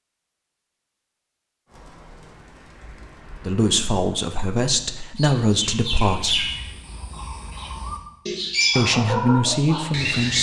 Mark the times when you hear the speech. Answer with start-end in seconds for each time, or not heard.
3.4-6.5, 8.8-10.3.